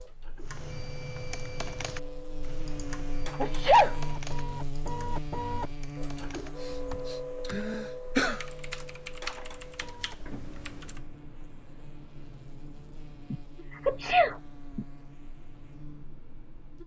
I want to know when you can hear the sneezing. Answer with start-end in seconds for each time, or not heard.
3.4-4.0, 6.7-8.4, 13.3-14.8.